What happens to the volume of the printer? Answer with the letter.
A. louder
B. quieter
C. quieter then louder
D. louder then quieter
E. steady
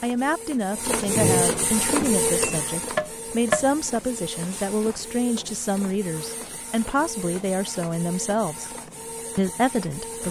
B.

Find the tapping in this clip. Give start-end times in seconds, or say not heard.
1.8-3.6.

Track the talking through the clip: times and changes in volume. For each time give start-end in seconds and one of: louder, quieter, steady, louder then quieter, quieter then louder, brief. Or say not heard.
0.0-8.7 steady
9.3-10.2 brief.